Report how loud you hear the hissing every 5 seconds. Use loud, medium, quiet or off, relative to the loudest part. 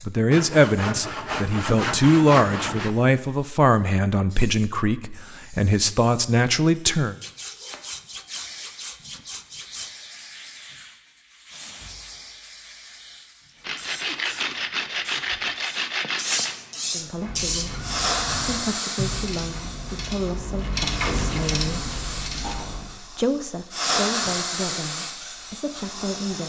quiet, quiet, quiet, loud, loud, medium.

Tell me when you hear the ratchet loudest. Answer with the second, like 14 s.
21 s.